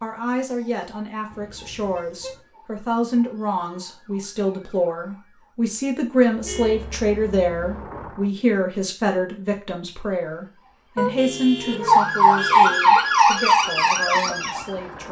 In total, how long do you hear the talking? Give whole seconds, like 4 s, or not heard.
15 s.